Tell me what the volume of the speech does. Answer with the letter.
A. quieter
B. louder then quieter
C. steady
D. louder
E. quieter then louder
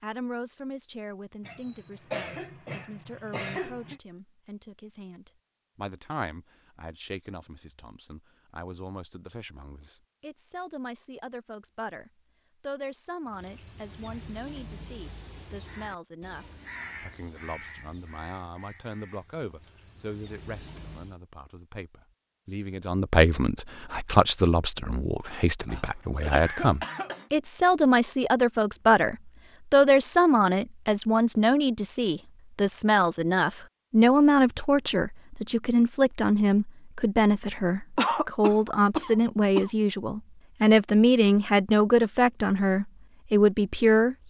D.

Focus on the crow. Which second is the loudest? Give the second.
17 s.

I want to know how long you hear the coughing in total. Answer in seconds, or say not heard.
6 s.